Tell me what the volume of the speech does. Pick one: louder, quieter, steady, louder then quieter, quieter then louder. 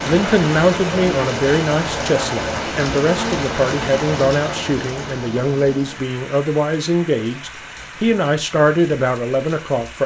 steady.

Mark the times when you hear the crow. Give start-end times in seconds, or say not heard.
not heard.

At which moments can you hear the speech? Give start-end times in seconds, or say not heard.
0.0-10.0.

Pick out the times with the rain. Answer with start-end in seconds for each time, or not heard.
0.0-10.0.